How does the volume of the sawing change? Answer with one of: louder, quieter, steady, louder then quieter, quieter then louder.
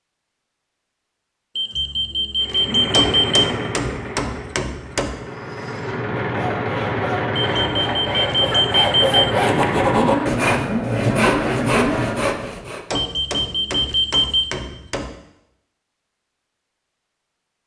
louder.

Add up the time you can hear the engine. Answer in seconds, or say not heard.
10 s.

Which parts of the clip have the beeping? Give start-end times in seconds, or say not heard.
1.6-3.5, 7.3-9.3, 12.9-14.6.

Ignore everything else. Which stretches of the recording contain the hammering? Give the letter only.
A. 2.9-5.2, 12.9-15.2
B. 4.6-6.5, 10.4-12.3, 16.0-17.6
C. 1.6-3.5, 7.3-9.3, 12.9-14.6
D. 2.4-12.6
A.